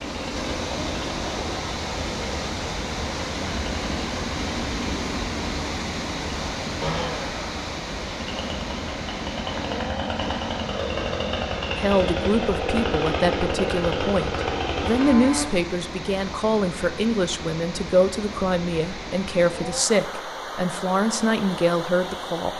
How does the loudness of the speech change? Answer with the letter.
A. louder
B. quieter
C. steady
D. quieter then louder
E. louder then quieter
C.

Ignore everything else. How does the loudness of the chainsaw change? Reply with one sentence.
The loudness of the chainsaw goes up.